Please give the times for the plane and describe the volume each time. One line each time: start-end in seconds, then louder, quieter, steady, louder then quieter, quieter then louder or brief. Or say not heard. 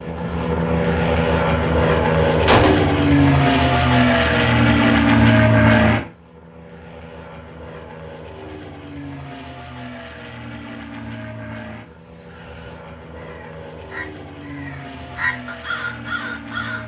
0.0-16.8 quieter.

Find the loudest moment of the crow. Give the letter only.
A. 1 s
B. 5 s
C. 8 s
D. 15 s
D.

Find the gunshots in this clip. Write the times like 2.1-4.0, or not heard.
2.5-3.0.